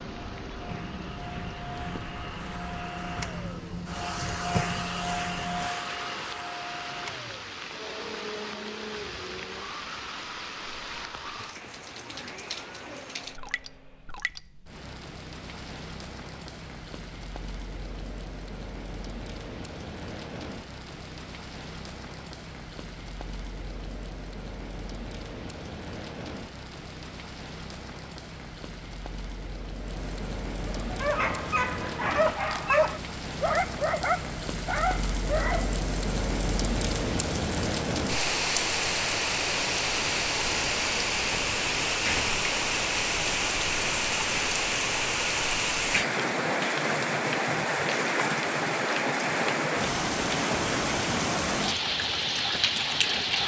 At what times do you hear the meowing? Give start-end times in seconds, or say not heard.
not heard.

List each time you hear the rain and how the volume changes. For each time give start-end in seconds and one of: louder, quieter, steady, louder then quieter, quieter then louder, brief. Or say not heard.
0.0-53.4 louder.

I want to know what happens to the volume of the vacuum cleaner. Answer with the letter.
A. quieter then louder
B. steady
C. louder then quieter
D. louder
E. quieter
C.